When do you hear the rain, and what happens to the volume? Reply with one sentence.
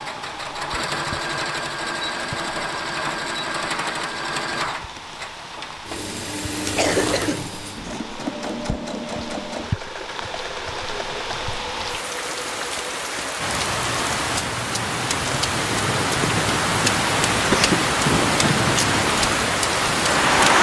The rain can be heard from 0.0 to 20.5 s, getting louder.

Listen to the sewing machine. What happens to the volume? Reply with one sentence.
The volume of the sewing machine goes down.